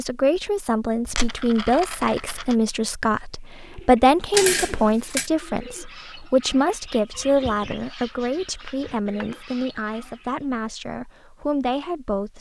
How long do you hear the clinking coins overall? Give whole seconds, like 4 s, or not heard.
3 s.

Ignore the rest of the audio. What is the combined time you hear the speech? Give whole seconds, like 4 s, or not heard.
12 s.